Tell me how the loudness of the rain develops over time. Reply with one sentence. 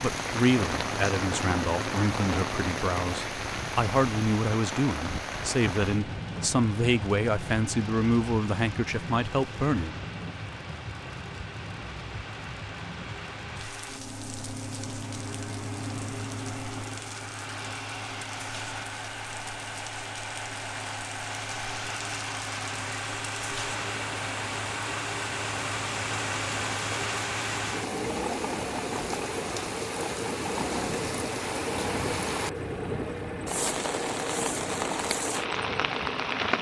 The loudness of the rain goes down, then up.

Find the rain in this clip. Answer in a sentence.
You can hear the rain from 0.0 to 36.5 s.